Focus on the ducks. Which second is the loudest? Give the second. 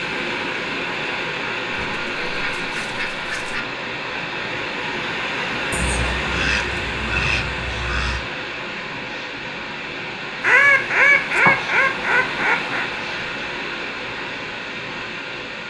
11 s.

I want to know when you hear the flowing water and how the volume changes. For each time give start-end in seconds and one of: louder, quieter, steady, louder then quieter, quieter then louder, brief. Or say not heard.
0.0-15.6 steady.